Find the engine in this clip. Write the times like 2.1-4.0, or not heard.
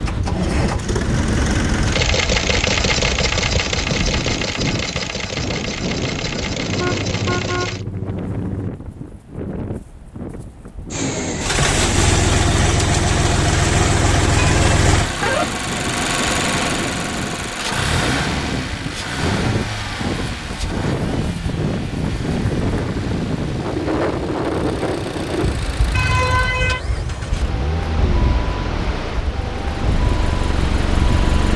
0.1-7.8, 10.9-31.5.